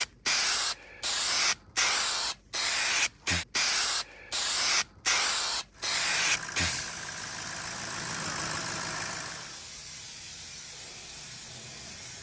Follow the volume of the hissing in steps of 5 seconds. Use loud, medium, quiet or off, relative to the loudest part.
loud, loud, quiet.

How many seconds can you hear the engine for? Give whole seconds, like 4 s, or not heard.
4 s.